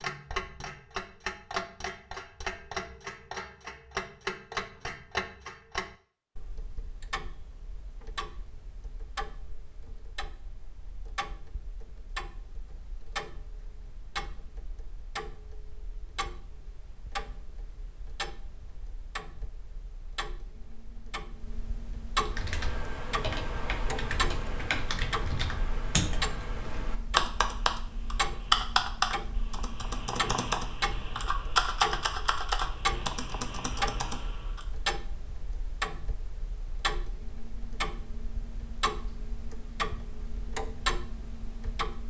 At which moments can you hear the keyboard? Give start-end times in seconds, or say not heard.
22.1-34.6.